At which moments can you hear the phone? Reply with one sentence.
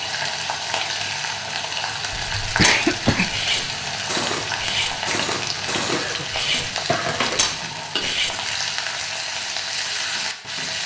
You can't hear the phone here.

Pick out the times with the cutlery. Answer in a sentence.
The cutlery can be heard from 2.5 to 8.3 s.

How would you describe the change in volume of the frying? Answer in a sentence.
The loudness of the frying stays about the same.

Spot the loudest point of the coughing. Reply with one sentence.
The loudest moment of the coughing is at 3 seconds.